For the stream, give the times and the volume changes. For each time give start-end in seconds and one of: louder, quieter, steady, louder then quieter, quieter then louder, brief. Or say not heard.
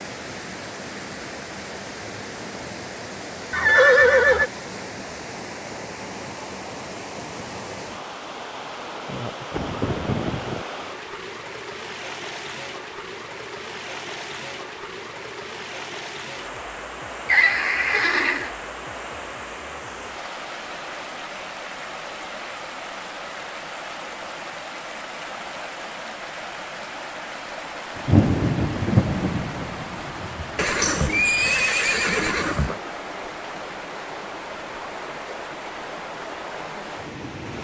0.0-37.5 steady.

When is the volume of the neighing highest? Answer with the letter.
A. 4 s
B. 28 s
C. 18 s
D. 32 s
A.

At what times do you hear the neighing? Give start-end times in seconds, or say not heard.
3.5-4.5, 17.2-18.5, 30.6-32.8.